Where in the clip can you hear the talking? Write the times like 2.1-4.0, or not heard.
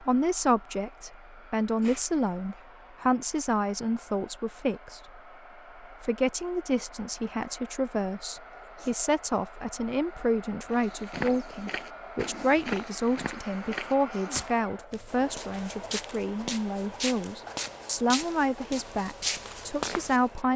0.0-5.2, 5.8-20.5.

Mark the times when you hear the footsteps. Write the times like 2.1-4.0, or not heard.
10.7-20.4.